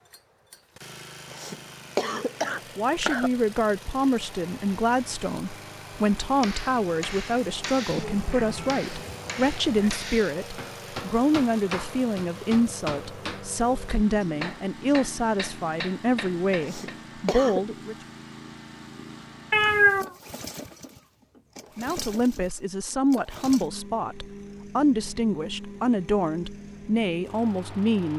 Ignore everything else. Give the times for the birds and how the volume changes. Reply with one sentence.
The birds can't be heard in this clip.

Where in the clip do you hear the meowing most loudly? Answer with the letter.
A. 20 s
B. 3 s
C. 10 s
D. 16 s
A.